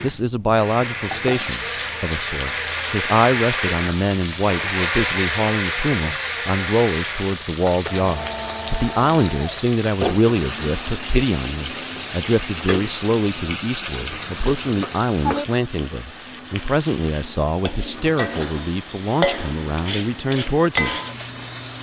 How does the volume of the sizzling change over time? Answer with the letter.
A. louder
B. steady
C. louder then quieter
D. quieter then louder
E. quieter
B.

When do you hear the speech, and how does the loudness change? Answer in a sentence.
The speech can be heard from 0.0 to 20.9 s, at a steady volume.